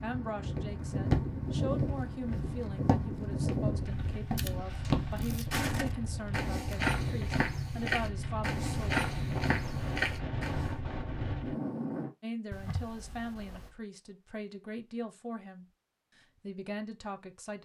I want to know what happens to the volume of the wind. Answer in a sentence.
The loudness of the wind stays about the same.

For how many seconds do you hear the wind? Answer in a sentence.
You can hear the wind for 12 seconds altogether.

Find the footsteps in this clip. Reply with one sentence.
The footsteps can be heard from 0.6 to 10.7 s.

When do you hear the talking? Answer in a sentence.
You can hear the talking from 0.0 to 9.1 s and from 12.2 to 17.6 s.